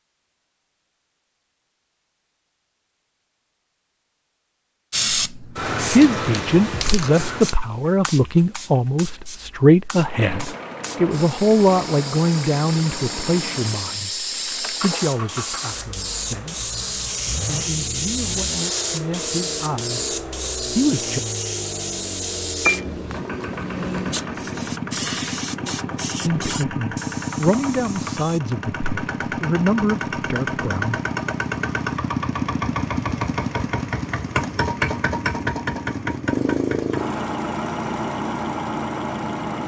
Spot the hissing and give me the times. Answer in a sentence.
The hissing can be heard from 4.9 to 28.4 s.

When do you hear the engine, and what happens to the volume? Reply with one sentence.
The engine can be heard from 9.9 to 39.6 s, getting louder.